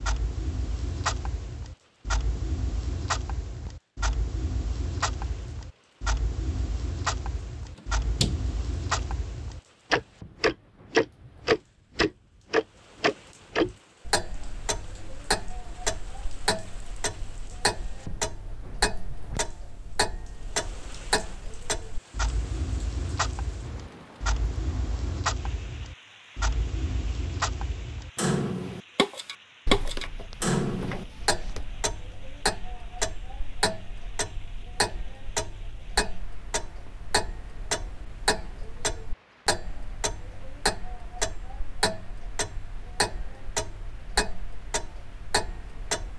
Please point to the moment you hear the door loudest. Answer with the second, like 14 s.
8 s.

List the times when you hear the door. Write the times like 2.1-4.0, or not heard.
8.0-8.4, 29.6-31.6.